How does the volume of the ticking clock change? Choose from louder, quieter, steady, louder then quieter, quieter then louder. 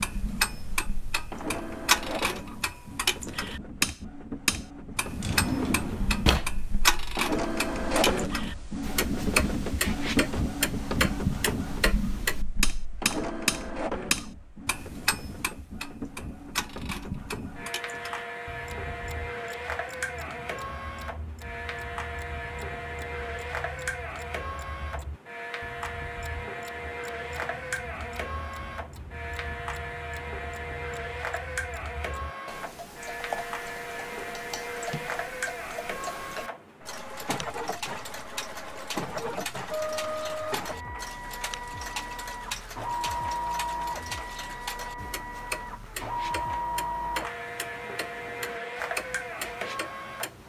quieter then louder.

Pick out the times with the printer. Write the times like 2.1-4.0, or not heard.
0.0-50.4.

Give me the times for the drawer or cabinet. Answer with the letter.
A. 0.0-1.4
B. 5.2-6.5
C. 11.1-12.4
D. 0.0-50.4
B.